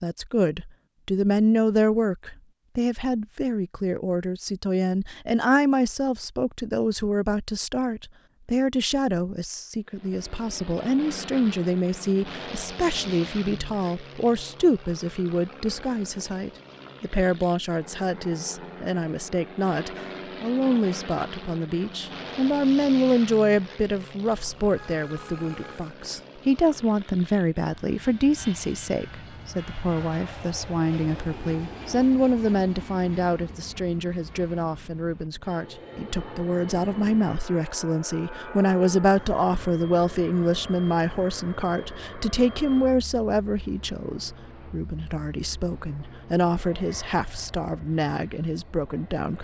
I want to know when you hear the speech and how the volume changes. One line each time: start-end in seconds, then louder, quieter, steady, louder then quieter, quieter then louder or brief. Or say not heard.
0.0-49.3 steady.